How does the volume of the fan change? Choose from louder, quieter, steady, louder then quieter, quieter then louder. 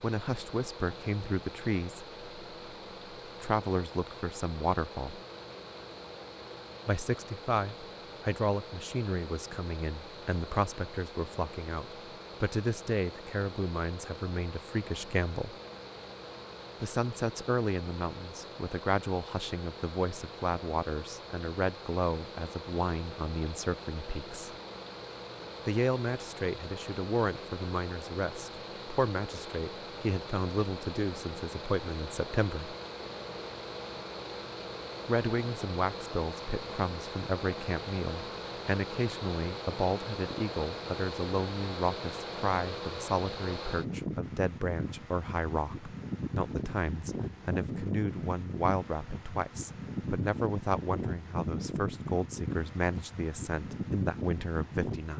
louder.